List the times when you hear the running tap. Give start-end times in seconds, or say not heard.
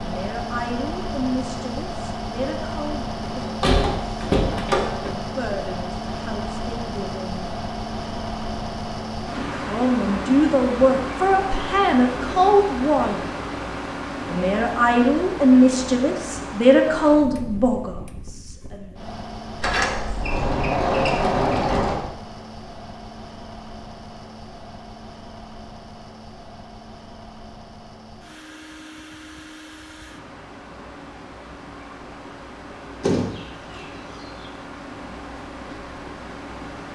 not heard.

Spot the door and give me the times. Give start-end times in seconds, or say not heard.
3.3-5.2, 19.6-22.1, 33.0-33.8.